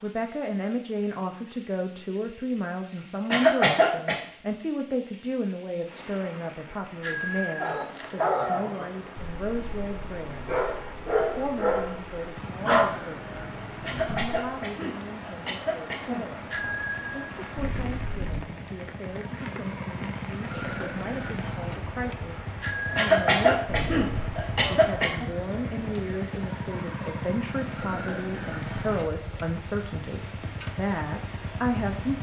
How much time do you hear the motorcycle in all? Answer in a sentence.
The motorcycle can be heard for 20 seconds in total.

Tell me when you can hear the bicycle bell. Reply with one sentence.
You can hear the bicycle bell from 7.0 to 7.9 s, from 16.5 to 18.4 s and from 22.6 to 24.4 s.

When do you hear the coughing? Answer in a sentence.
The coughing can be heard from 3.3 to 4.2 s, from 13.8 to 16.2 s and from 22.9 to 25.2 s.